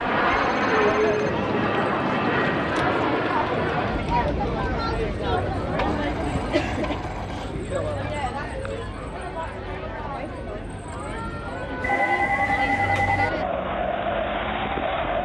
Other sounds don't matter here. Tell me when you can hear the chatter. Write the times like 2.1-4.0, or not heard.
0.0-15.1.